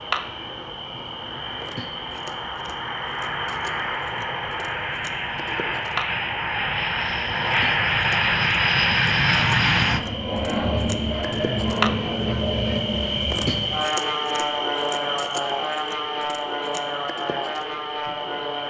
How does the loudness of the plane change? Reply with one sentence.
The loudness of the plane goes up, then down.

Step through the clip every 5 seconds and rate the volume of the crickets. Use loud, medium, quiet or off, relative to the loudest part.
medium, medium, loud, medium.